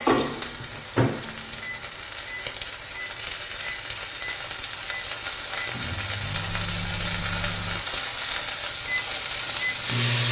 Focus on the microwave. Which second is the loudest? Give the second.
1 s.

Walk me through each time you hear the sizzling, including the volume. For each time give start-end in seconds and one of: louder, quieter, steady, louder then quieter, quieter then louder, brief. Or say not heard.
0.0-10.2 louder.